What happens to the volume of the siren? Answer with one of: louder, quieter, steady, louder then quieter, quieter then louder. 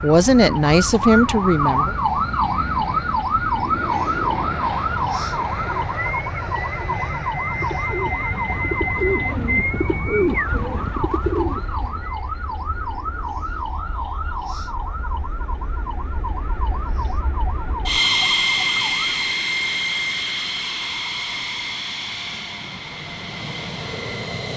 quieter.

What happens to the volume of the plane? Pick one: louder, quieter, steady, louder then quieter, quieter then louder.
quieter then louder.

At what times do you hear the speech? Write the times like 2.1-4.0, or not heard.
0.0-1.9.